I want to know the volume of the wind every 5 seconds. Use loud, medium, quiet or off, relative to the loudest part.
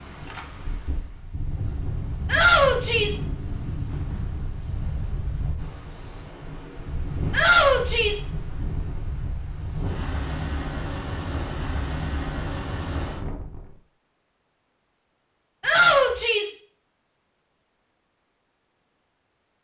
loud, loud, loud, off.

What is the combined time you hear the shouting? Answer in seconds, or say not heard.
3 s.